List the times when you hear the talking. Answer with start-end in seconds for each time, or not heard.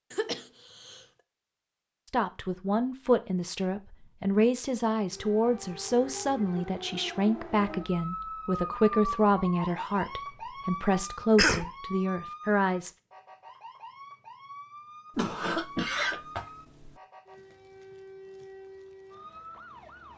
2.0-12.9.